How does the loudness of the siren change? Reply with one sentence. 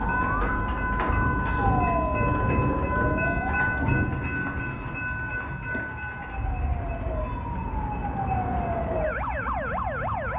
The volume of the siren goes down, then up.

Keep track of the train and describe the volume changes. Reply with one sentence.
The loudness of the train goes down.